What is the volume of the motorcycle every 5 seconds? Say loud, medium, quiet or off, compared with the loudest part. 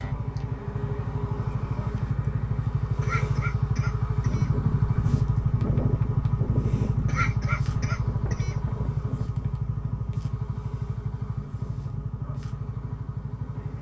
loud, loud, medium.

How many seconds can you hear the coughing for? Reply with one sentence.
You can hear the coughing for 3 seconds altogether.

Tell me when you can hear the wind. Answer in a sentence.
The wind can be heard from 4.2 to 13.7 s.